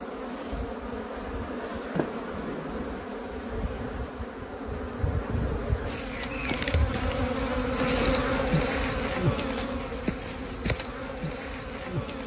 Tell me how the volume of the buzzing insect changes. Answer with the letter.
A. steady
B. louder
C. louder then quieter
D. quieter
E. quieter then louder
C.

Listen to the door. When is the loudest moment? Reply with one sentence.
The loudest moment of the door is at 2 seconds.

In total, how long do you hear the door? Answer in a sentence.
The door can be heard for 2 seconds in total.